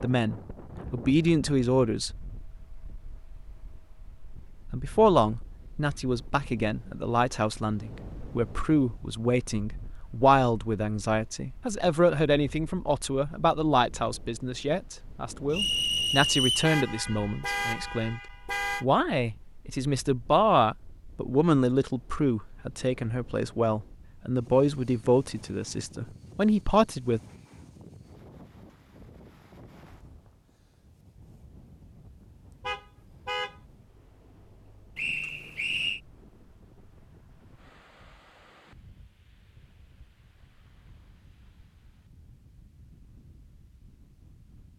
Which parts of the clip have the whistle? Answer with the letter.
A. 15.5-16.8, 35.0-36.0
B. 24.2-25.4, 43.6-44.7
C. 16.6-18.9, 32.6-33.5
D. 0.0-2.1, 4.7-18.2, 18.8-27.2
A.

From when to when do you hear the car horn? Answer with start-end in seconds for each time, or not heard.
16.6-18.9, 32.6-33.5.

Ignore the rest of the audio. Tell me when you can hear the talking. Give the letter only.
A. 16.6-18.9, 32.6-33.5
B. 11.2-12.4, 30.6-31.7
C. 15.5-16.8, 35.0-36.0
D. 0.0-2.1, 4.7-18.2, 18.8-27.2
D.